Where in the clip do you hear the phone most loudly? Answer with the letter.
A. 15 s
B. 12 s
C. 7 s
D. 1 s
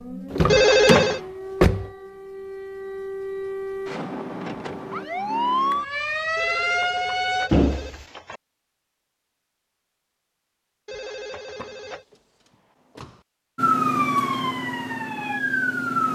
D.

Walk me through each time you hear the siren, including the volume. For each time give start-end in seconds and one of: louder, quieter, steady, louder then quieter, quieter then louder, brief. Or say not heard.
0.0-7.5 louder
13.6-16.1 brief.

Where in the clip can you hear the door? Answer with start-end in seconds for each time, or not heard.
0.3-1.9, 7.5-8.1, 11.6-13.2.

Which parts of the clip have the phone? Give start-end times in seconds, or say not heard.
0.5-1.2, 6.3-8.4, 10.8-12.1.